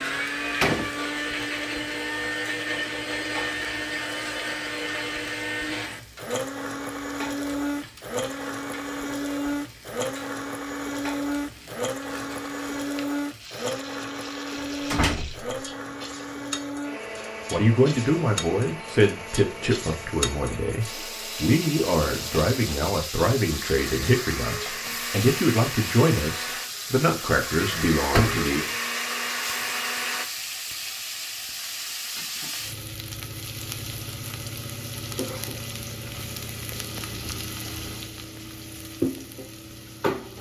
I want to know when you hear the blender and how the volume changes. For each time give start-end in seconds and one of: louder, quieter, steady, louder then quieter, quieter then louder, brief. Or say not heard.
0.0-30.2 quieter then louder.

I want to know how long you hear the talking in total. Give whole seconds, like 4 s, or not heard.
11 s.